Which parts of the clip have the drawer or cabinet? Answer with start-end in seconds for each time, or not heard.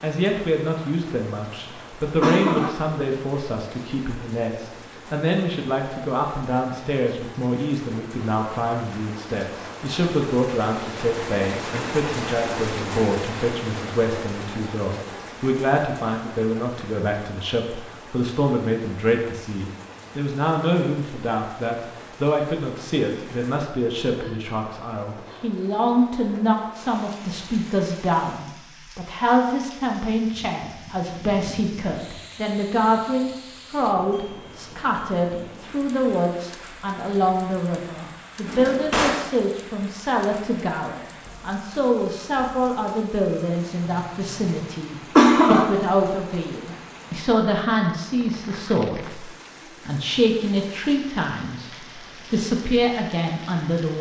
38.5-39.2.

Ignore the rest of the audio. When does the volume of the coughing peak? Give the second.
45 s.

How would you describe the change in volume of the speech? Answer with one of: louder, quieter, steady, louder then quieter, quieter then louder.
steady.